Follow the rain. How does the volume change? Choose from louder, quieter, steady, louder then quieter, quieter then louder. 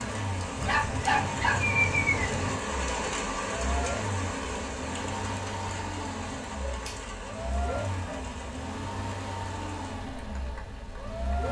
quieter.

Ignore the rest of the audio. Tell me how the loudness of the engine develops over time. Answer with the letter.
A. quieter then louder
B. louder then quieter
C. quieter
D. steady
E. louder
D.